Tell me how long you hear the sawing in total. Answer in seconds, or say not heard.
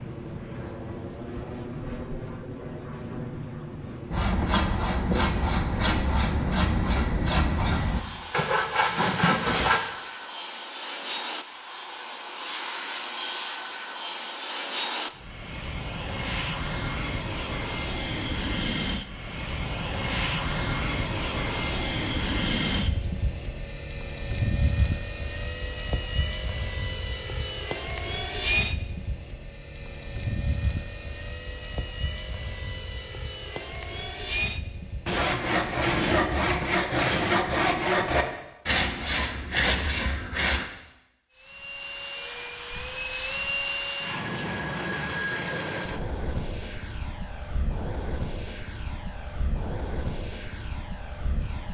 11 s.